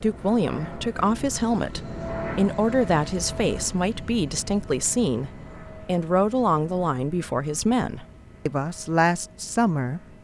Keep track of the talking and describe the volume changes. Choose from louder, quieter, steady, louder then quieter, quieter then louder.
steady.